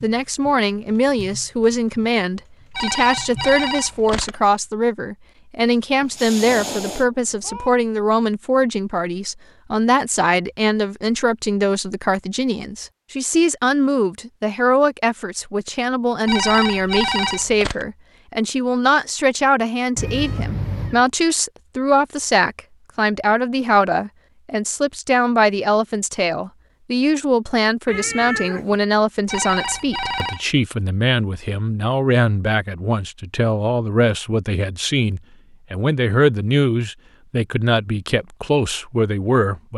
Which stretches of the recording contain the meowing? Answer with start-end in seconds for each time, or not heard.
6.0-7.7, 19.9-21.1, 27.9-28.8.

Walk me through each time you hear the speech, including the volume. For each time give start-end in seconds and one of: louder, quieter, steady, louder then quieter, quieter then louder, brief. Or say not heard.
0.0-39.7 steady.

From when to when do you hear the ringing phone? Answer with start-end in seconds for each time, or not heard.
2.8-4.3, 16.2-17.9, 29.2-30.4.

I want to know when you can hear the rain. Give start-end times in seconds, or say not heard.
not heard.